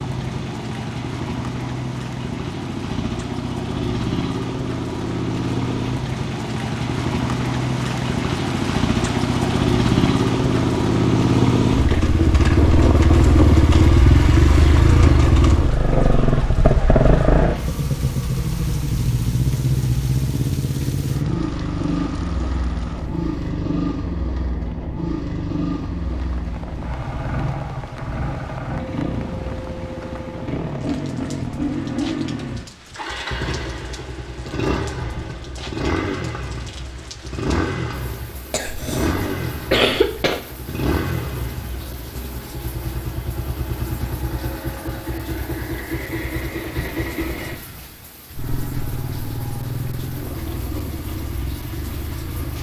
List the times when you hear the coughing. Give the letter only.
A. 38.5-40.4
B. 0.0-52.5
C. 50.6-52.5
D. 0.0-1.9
A.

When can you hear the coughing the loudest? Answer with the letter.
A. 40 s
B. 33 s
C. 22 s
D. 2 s
A.